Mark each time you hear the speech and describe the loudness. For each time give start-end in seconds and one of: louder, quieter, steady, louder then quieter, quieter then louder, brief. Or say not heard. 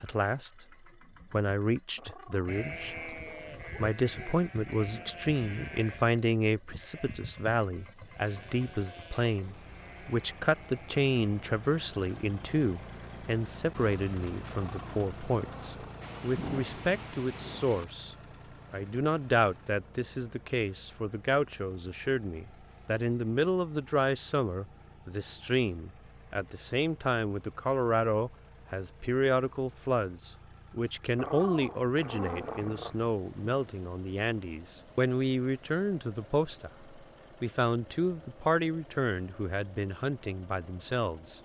0.0-0.7 brief
1.3-3.1 brief
3.8-41.3 steady.